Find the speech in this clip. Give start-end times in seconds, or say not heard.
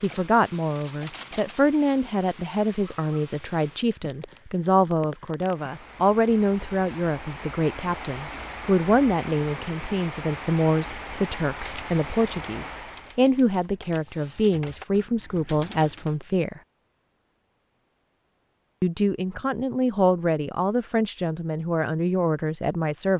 0.0-16.6, 18.8-23.1.